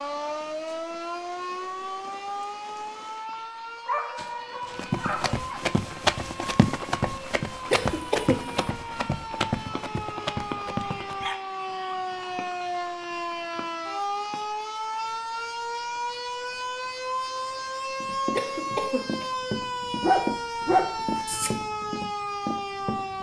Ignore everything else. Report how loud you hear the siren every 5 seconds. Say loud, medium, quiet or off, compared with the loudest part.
loud, medium, loud, loud, loud.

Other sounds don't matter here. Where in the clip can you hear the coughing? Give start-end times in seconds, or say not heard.
7.7-8.7, 18.4-19.4.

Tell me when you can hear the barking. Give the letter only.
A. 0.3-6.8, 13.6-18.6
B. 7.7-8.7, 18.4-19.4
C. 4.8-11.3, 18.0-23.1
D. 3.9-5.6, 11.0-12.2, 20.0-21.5
D.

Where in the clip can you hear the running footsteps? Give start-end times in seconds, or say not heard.
4.8-11.3, 18.0-23.1.